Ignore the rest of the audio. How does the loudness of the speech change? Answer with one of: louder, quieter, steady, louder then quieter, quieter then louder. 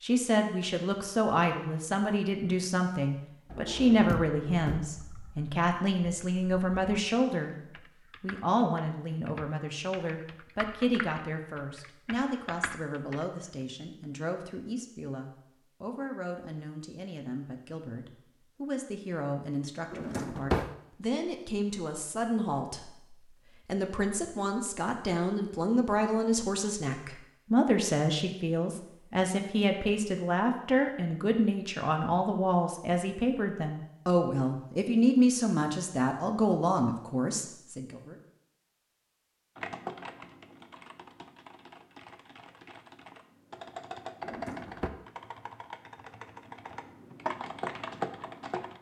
quieter then louder.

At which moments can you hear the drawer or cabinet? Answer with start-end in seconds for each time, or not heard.
3.5-4.8, 19.9-20.8, 44.2-44.9.